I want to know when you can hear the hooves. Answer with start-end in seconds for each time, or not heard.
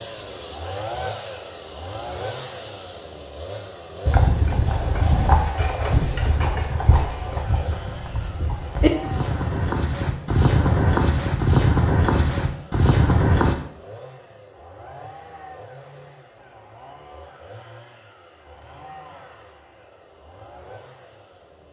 4.0-13.6.